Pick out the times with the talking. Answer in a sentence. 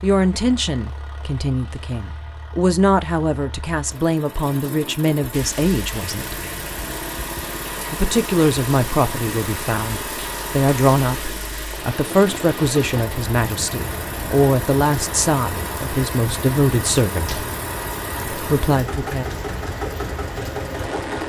You can hear the talking from 0.0 to 6.4 s, from 7.9 to 17.4 s and from 18.3 to 19.2 s.